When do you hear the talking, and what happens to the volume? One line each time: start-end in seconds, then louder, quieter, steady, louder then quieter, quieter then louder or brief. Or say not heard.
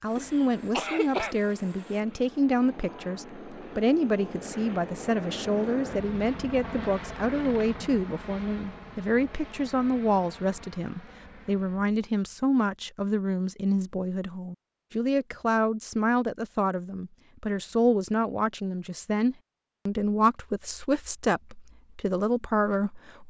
0.0-23.2 steady.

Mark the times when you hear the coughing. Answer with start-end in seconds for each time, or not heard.
0.1-1.4.